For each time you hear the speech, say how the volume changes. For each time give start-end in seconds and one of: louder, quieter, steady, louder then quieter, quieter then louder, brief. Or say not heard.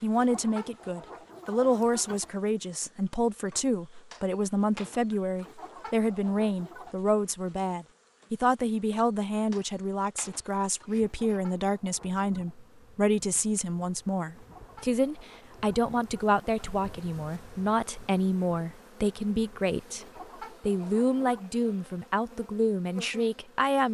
0.0-23.8 steady.